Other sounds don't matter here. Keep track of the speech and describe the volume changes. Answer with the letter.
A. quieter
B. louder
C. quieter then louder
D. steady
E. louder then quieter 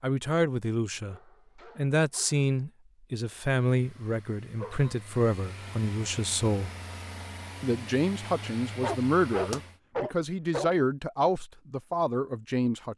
D.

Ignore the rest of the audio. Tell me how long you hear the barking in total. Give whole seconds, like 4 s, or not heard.
4 s.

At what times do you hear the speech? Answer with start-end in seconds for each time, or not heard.
0.0-6.7, 7.6-12.9.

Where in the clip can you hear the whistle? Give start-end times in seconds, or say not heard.
not heard.